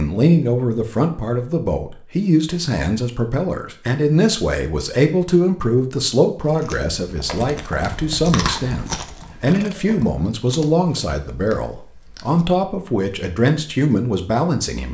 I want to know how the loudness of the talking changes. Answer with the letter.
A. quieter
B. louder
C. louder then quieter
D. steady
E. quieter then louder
D.